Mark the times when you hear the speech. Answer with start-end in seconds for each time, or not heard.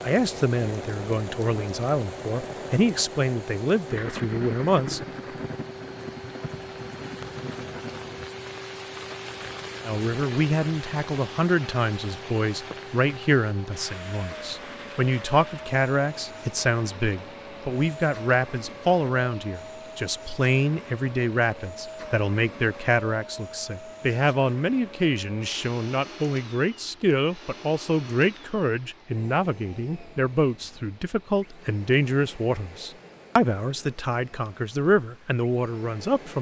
0.0-5.0, 9.8-36.3.